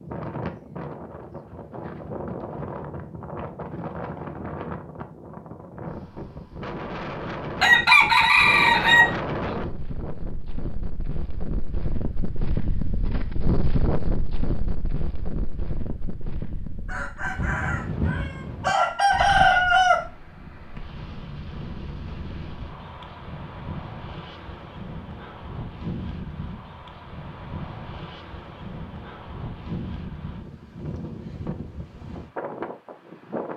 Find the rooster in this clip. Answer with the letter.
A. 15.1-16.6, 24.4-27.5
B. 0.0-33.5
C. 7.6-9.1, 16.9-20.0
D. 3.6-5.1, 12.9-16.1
C.